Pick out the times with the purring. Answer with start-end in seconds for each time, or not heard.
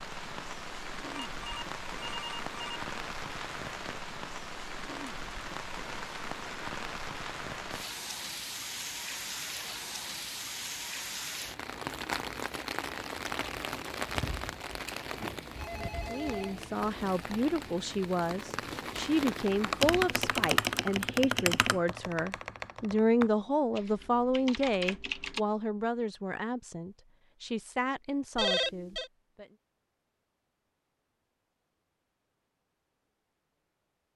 not heard.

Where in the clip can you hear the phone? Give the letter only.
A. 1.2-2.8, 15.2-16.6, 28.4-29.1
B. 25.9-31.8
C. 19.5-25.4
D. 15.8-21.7
A.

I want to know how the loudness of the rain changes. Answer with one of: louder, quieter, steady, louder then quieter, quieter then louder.
steady.